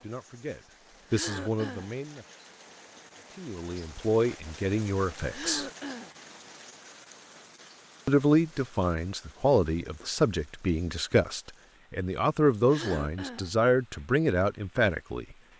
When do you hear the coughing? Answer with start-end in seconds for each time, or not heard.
1.1-1.9, 5.3-6.2, 12.7-13.5.